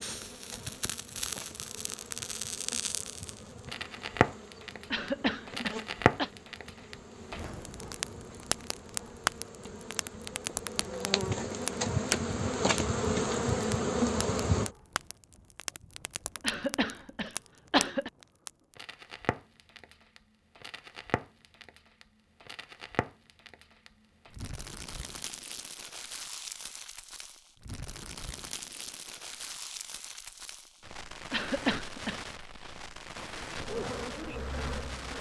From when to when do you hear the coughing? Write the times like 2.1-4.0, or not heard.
4.9-6.3, 16.4-18.1, 31.3-32.2.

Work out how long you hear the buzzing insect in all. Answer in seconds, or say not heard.
16 s.